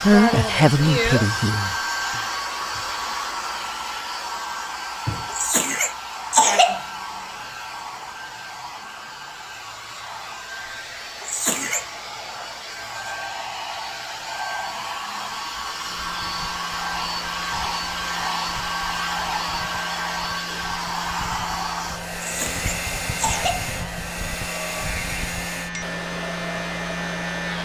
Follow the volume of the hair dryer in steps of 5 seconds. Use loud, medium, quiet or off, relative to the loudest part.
loud, medium, medium, loud, loud, medium.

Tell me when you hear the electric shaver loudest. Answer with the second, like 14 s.
27 s.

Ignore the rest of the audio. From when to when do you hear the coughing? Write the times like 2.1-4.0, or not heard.
5.3-6.8, 11.2-11.8, 22.1-23.7.